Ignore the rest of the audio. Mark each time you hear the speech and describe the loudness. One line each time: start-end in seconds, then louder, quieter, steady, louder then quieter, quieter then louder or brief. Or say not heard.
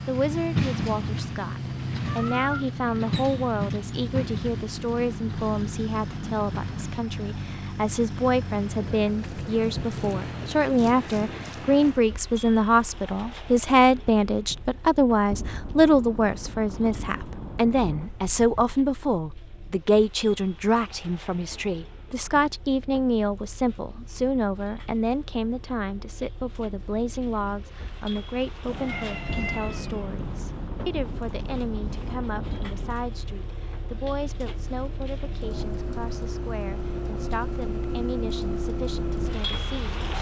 0.1-40.1 louder then quieter.